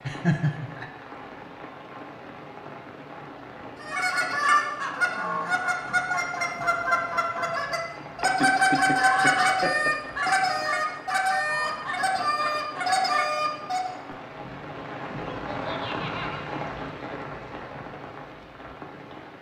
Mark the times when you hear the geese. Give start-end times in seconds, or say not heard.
3.8-13.9.